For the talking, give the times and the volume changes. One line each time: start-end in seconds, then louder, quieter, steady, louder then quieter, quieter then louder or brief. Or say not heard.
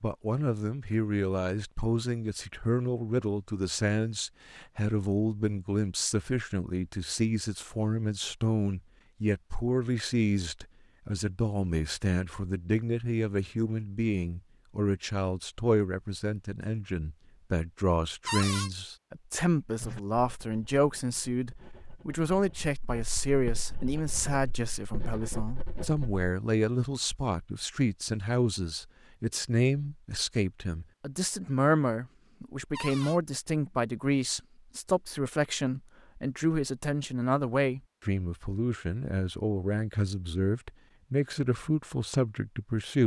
0.0-43.0 steady.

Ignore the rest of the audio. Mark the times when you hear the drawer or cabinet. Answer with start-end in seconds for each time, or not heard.
18.2-18.7, 32.7-33.2.